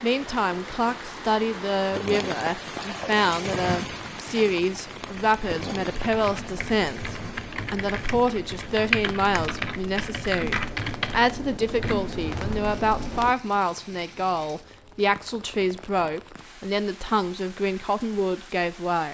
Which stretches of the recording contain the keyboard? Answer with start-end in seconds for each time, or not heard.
5.0-13.3.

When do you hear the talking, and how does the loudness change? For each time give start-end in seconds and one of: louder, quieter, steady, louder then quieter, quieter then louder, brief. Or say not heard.
0.0-19.0 steady.